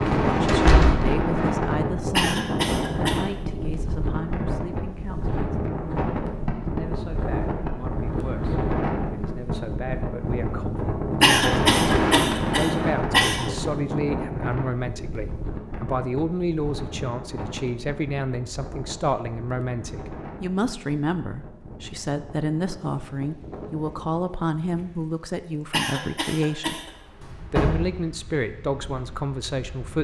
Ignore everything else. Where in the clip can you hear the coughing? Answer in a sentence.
The coughing can be heard from 2.1 to 3.2 s, from 11.2 to 13.4 s and from 25.7 to 26.9 s.